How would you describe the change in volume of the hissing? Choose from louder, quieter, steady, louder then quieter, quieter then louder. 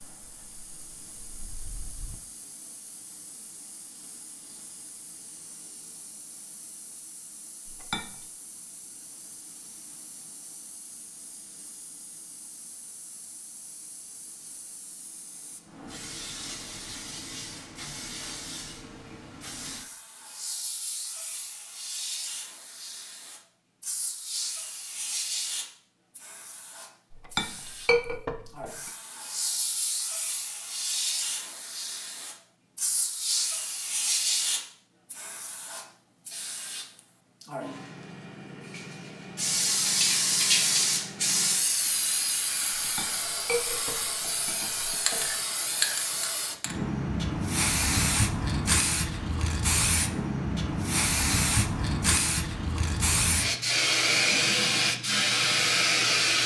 louder.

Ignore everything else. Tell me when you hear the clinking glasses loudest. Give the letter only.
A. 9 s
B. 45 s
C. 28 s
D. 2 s
C.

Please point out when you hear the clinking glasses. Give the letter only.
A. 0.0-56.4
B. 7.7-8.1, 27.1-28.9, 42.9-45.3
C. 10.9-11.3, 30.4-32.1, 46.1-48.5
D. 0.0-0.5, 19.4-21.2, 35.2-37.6
B.